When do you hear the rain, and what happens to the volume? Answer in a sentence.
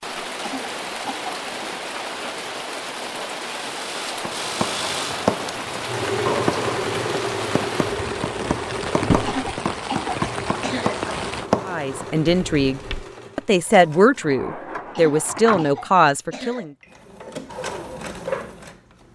The rain can be heard from 0.0 to 11.5 s, at a steady volume.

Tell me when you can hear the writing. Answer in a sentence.
You can hear the writing from 4.2 to 13.1 s.